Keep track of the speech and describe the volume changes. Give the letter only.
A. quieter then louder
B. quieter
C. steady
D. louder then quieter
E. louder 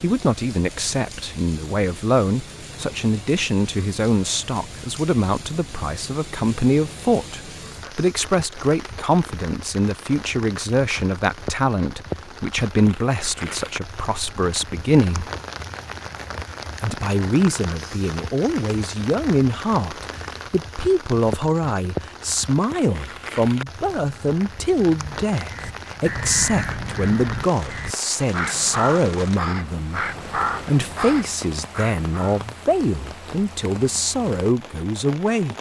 C.